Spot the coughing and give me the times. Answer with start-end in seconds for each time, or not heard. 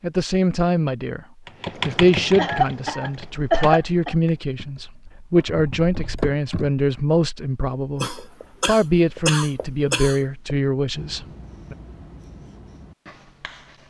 2.4-4.2, 8.0-10.2.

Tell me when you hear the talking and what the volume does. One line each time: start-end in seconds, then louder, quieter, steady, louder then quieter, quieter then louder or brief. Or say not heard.
0.0-1.2 brief
1.9-11.8 steady.